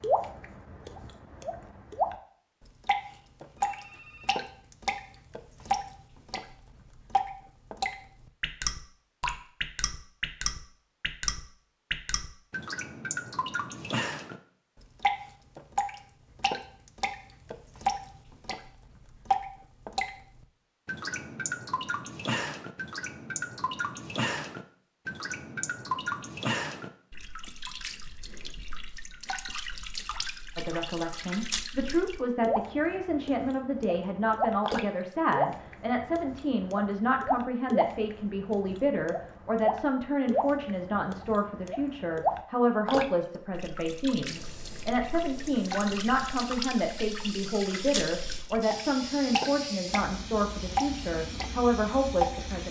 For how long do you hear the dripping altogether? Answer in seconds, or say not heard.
50 s.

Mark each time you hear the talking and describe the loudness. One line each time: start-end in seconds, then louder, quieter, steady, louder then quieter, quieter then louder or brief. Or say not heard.
30.6-52.6 steady.